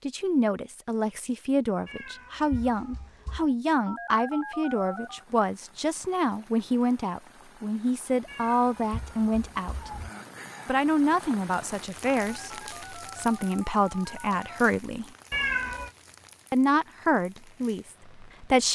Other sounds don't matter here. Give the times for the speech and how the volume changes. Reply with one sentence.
The speech can be heard from 0.0 to 9.9 s, at a steady volume; from 10.7 to 15.1 s, getting quieter then louder; and briefly from 16.5 to 18.6 s.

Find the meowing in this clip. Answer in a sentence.
The meowing can be heard from 1.9 to 3.5 s, from 8.2 to 10.1 s and from 15.3 to 15.9 s.